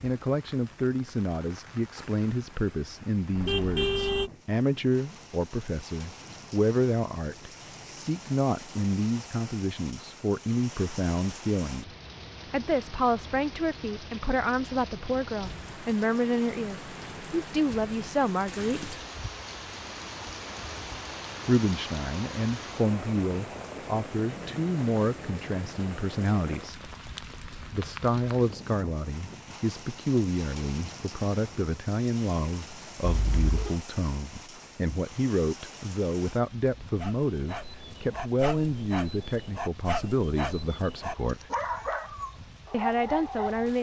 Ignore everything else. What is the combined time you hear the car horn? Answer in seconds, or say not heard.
2 s.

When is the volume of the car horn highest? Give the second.
4 s.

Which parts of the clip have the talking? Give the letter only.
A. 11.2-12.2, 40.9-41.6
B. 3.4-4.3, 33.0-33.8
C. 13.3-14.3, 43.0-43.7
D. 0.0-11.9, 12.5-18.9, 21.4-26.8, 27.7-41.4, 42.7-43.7
D.